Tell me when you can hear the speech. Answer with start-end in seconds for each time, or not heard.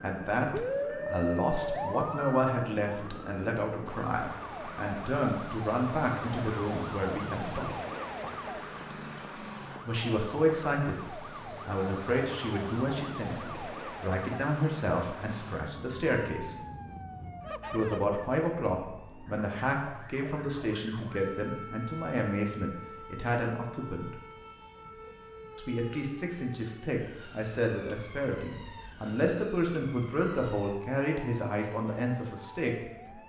0.0-7.8, 9.8-16.6, 17.7-24.1, 25.6-33.2.